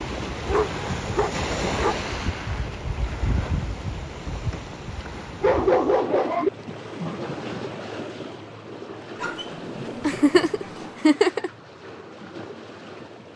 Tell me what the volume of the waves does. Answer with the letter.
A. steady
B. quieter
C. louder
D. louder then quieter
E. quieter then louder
B.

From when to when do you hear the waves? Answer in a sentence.
The waves can be heard from 0.0 to 13.3 s.